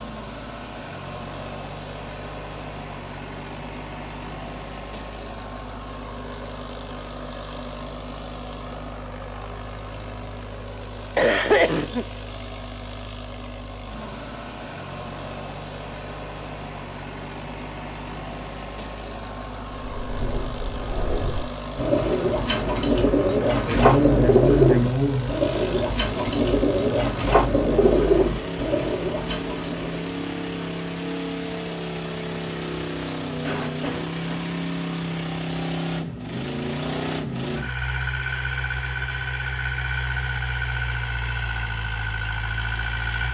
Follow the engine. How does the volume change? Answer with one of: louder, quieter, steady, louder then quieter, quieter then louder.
louder.